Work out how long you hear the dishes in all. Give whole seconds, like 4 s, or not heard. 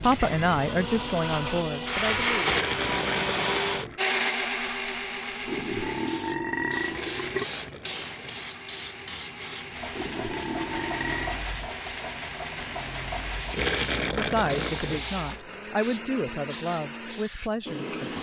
not heard.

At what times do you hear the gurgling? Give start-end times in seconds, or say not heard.
2.4-4.0, 6.8-8.4, 13.5-15.1.